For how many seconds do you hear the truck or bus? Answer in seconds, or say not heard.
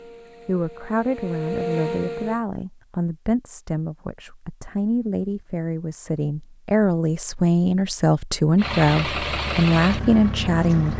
2 s.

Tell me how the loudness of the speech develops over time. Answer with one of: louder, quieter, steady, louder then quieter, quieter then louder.
louder.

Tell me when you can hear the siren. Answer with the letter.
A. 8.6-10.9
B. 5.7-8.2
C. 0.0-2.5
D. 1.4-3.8
C.